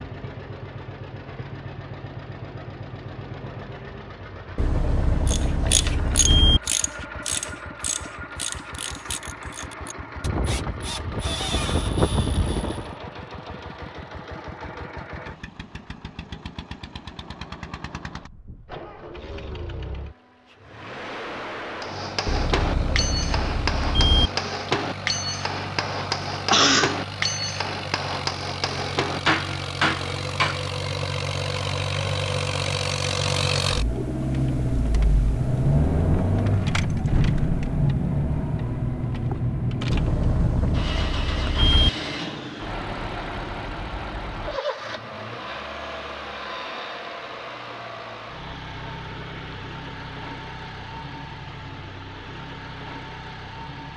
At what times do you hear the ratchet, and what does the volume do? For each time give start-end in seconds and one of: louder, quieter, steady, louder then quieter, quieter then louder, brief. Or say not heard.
5.2-12.9 quieter then louder.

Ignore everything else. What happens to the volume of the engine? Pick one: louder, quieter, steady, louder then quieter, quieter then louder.
louder then quieter.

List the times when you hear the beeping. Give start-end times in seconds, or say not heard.
4.5-6.6, 22.2-24.3, 39.9-41.9.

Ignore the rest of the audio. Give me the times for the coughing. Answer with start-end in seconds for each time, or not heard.
26.5-27.0.